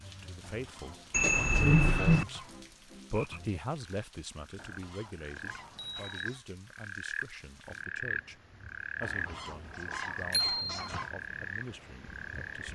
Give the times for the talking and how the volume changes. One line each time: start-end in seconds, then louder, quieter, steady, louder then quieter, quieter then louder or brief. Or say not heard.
0.0-2.5 brief
3.1-12.6 quieter.